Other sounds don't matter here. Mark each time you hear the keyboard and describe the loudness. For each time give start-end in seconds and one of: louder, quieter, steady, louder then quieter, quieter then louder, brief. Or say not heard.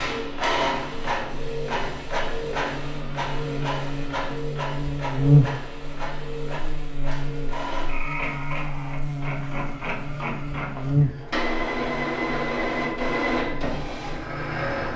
not heard.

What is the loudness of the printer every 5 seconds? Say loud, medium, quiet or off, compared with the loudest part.
loud, medium, loud.